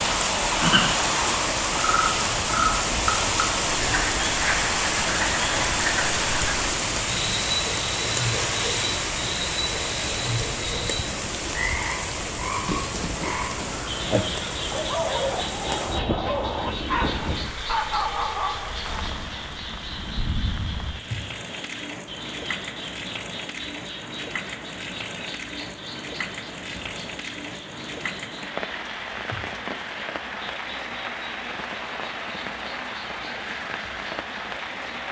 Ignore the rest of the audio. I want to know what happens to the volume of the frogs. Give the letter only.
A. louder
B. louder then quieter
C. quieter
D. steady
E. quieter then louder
C.